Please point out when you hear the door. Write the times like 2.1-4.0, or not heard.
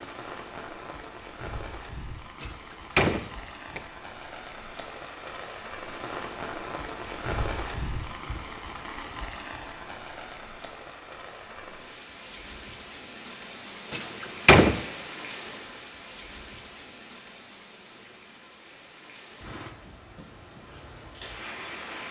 2.4-3.9, 13.9-14.8.